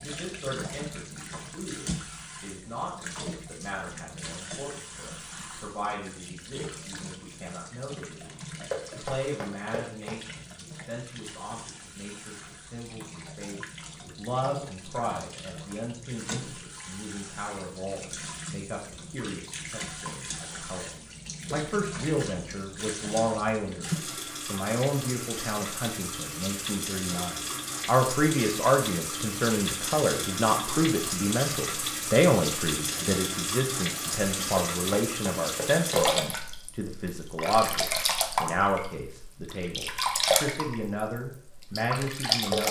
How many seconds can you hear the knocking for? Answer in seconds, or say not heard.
3 s.